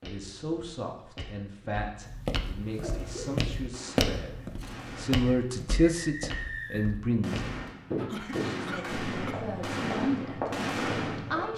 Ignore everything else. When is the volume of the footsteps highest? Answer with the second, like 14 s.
4 s.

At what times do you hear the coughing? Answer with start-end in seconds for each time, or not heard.
2.8-3.5, 7.7-9.5.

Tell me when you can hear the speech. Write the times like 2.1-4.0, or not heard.
0.0-7.5, 8.4-11.5.